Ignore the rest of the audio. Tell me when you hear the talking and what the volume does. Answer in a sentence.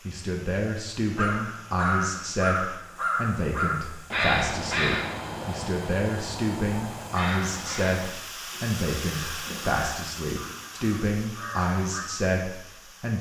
You can hear the talking from 0.1 to 13.1 s, at a steady volume.